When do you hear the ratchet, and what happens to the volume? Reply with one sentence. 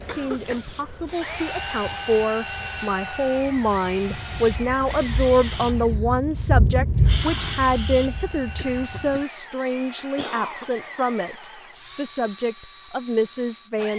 The ratchet can't be heard in this clip.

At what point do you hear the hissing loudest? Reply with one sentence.
The volume of the hissing peaks at 7 seconds.